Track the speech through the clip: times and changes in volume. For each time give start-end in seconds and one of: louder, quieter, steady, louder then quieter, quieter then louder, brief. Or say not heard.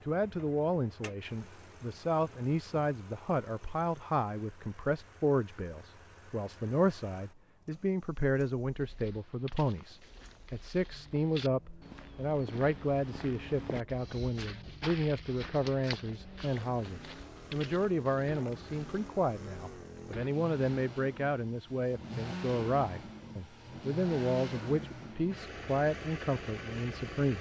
0.1-27.3 steady.